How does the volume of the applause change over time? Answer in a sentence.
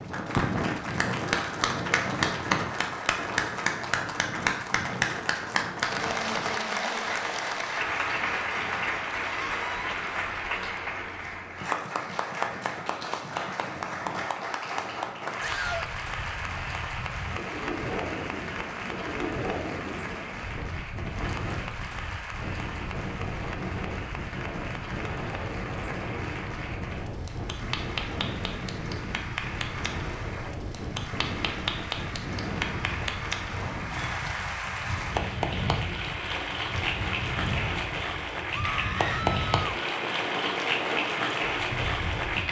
The loudness of the applause goes down, then up.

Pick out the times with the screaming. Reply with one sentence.
The screaming can be heard from 9.2 to 9.9 s, from 15.4 to 15.9 s and from 38.5 to 39.5 s.